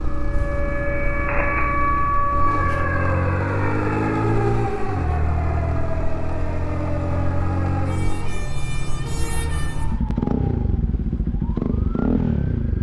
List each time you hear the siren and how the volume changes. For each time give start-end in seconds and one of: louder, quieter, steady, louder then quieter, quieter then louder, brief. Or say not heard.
0.0-12.7 quieter.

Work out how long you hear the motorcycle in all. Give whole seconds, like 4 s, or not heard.
13 s.